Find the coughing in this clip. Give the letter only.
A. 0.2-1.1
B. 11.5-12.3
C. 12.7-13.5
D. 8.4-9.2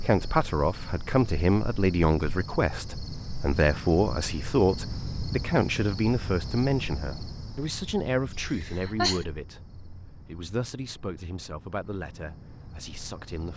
D.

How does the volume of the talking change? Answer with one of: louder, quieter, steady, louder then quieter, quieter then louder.
quieter.